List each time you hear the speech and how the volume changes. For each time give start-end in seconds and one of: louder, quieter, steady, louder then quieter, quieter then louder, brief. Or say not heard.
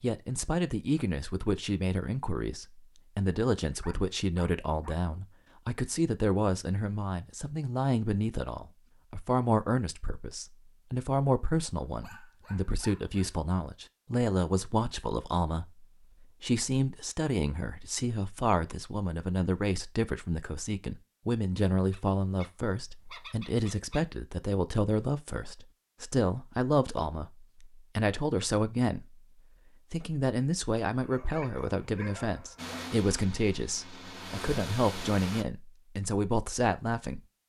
0.0-29.2 steady
29.9-37.2 steady.